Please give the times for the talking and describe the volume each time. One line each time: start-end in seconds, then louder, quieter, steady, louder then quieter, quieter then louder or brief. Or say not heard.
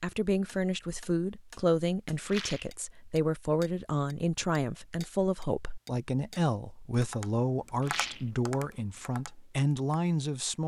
0.0-10.6 steady.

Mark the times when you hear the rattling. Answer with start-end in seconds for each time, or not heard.
2.2-2.8, 7.8-8.3.